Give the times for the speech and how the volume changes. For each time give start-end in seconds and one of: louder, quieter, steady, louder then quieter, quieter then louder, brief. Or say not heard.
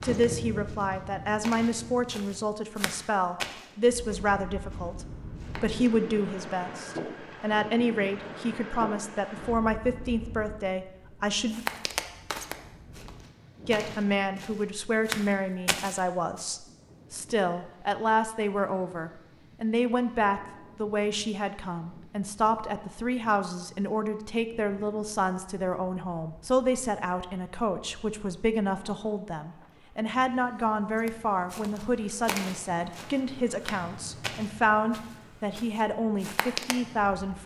0.0-11.6 steady
13.7-37.4 steady.